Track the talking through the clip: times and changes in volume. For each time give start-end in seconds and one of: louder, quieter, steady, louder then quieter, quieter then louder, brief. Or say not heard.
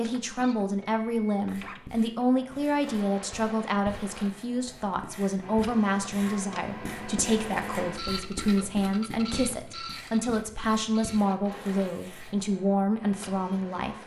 0.0-13.9 steady.